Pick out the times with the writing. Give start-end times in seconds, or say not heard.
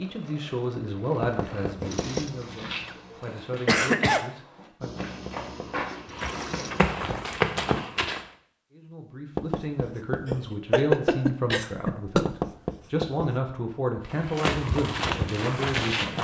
1.2-2.4, 4.8-5.8, 9.3-10.5, 12.2-13.3.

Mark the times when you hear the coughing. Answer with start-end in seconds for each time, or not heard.
2.9-4.2, 10.2-12.2.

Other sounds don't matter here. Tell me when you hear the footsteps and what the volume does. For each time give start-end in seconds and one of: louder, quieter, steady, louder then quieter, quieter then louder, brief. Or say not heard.
1.8-8.2 quieter then louder
14.1-16.2 brief.